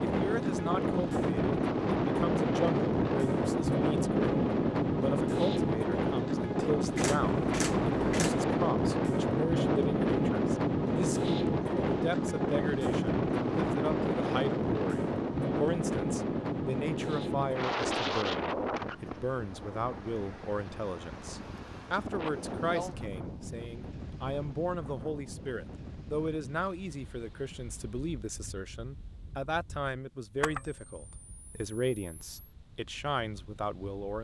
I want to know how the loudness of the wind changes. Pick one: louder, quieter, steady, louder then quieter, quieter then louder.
quieter.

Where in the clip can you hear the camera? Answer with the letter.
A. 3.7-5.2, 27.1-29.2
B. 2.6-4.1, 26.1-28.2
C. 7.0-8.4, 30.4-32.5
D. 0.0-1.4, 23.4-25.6
C.